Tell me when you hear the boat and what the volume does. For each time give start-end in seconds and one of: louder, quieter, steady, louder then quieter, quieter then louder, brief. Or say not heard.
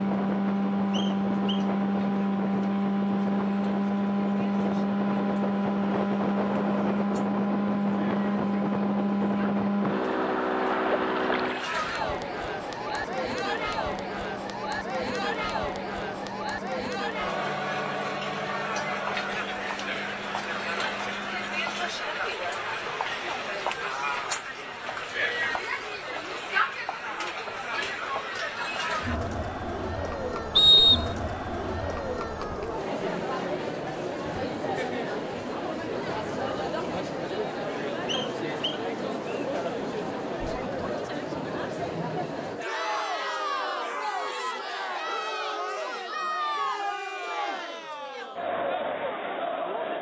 0.0-21.9 quieter.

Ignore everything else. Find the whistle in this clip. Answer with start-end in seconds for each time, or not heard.
0.9-1.7, 30.6-31.1, 38.0-39.5.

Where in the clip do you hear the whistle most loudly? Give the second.
31 s.